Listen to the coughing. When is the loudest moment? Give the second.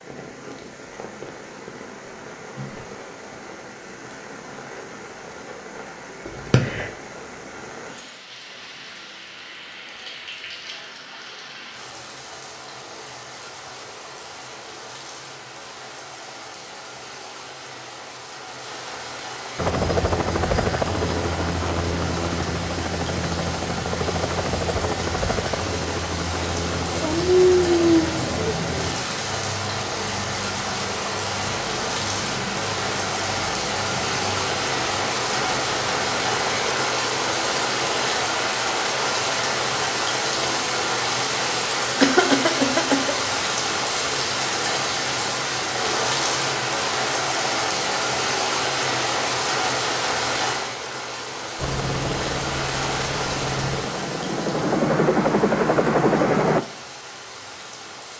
42 s.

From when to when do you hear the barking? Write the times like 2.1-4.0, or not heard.
27.0-28.6.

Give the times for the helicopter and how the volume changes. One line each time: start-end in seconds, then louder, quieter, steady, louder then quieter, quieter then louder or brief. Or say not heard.
19.6-36.8 quieter
51.5-56.6 louder.